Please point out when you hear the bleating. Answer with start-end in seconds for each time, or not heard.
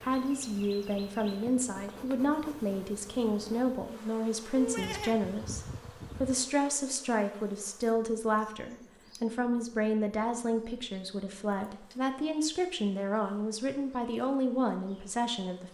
4.5-6.4.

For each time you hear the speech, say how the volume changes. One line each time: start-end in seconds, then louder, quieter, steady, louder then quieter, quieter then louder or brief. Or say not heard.
0.0-15.7 steady.